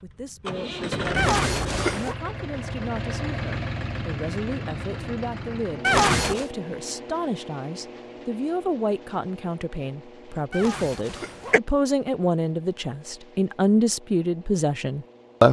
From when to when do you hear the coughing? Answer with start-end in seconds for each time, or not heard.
1.1-2.1, 5.8-6.5, 10.5-11.6.